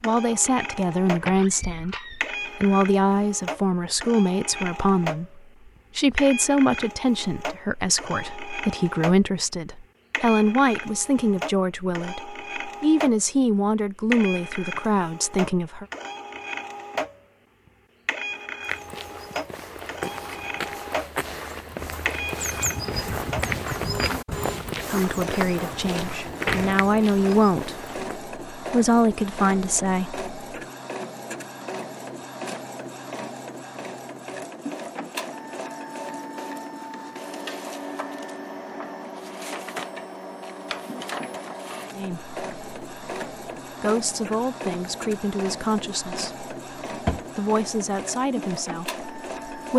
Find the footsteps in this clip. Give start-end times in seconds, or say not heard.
18.6-28.2.